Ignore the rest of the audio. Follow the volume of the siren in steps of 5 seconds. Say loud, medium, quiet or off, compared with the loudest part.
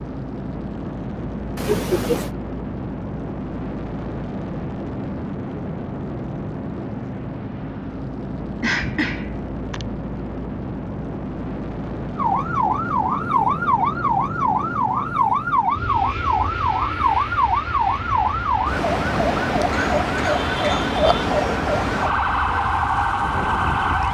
off, off, loud, loud, loud.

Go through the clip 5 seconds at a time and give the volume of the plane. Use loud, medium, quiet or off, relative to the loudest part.
loud, loud, loud, loud, medium.